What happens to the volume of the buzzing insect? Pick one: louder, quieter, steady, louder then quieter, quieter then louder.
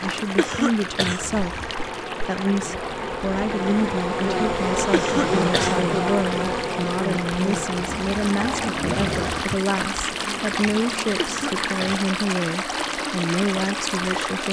louder then quieter.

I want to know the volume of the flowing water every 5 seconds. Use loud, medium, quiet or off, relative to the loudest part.
medium, loud, loud.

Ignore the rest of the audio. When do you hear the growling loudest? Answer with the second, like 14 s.
9 s.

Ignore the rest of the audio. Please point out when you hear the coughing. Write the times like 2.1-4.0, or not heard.
0.3-1.2, 4.9-5.8, 11.2-12.1.